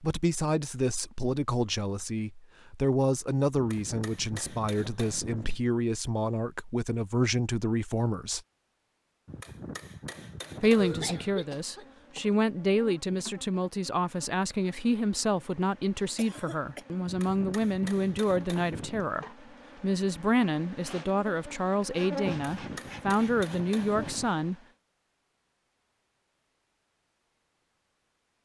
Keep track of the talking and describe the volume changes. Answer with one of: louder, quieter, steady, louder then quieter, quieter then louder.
steady.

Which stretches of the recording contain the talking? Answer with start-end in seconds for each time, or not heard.
0.0-8.4, 10.6-24.6.